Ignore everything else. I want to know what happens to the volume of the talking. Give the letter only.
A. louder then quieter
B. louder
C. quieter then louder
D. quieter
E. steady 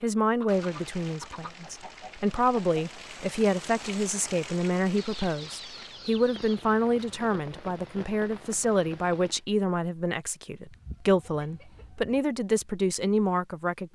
E.